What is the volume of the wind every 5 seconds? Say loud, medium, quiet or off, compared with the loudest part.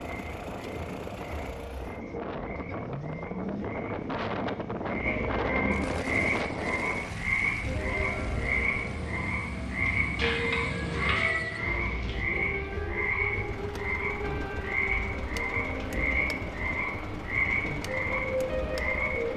loud, loud, medium, medium.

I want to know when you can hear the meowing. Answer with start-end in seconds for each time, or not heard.
10.2-12.2.